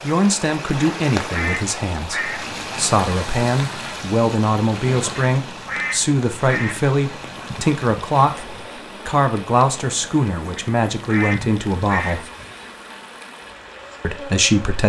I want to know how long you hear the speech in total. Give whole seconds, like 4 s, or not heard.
13 s.